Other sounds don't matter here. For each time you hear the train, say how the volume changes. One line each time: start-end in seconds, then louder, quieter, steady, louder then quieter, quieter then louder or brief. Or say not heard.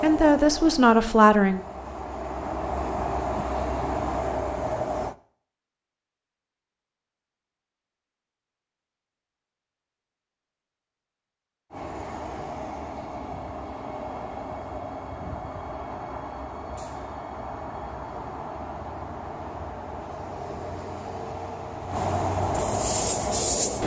0.0-5.2 louder
11.7-23.8 louder.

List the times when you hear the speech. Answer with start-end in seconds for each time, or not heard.
0.0-1.6.